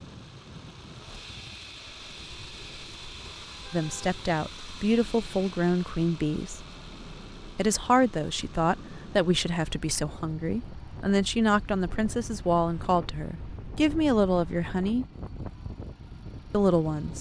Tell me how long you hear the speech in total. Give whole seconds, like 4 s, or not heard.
11 s.